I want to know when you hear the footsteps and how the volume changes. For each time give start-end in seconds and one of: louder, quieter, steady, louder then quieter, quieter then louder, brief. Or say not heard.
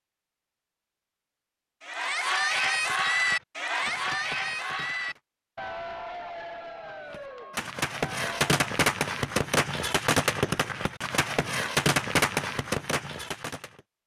not heard.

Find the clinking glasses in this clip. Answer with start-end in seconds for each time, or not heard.
not heard.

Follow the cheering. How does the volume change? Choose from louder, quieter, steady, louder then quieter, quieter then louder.
quieter.